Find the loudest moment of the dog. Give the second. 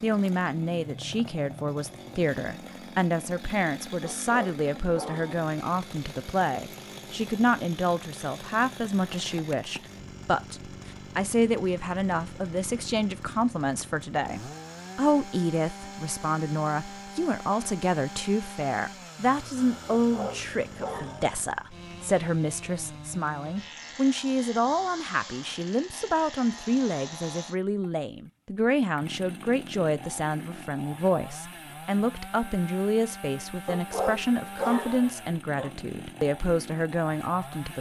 35 s.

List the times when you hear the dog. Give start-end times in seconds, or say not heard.
4.0-5.3, 19.9-21.4, 33.6-35.7.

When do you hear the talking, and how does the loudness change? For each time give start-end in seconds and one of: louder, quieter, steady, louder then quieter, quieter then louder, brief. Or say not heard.
0.0-37.7 steady.